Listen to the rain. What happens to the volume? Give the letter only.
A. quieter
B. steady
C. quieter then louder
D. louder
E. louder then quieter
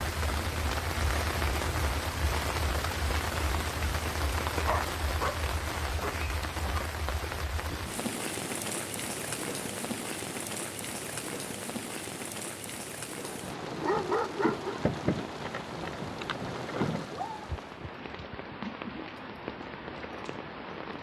A.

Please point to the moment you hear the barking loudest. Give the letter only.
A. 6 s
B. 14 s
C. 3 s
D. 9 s
B.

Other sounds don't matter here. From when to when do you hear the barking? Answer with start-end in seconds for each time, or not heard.
4.7-6.2, 13.2-14.8.